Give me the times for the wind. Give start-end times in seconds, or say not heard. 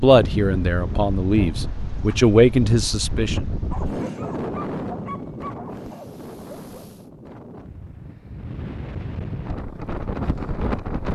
0.0-11.1.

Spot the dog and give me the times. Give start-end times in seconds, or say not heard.
3.7-7.0.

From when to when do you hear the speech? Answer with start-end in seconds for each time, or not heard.
0.0-3.4.